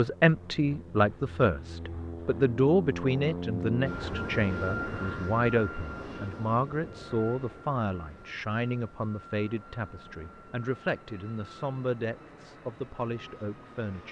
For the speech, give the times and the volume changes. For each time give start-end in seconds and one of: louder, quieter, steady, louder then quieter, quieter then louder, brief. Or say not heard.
0.0-14.0 quieter.